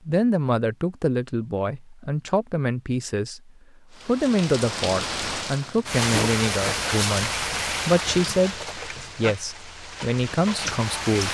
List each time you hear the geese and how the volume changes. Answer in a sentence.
The geese can't be heard in this clip.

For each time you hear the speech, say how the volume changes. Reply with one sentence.
You can hear the speech from 0.1 to 11.2 s, at a steady volume.